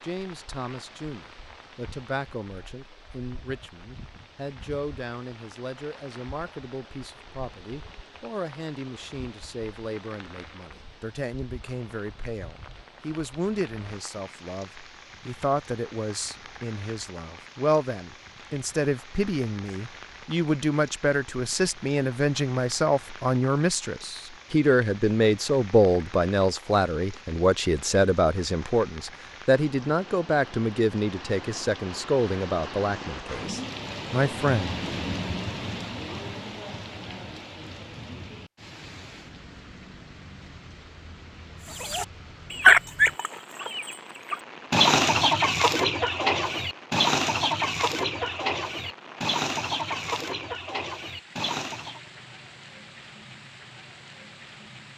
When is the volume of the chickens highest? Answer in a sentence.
The volume of the chickens peaks at 43 seconds.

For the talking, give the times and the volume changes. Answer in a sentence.
The talking can be heard from 0.0 to 34.8 s, getting louder.